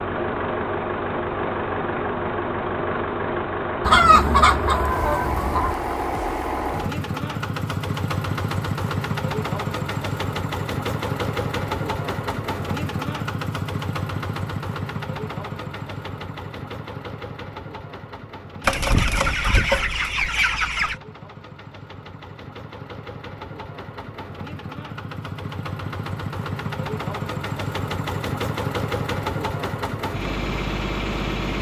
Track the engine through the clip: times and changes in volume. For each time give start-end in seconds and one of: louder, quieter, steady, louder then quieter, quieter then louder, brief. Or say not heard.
0.0-31.5 quieter then louder.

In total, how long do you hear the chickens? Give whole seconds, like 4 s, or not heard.
4 s.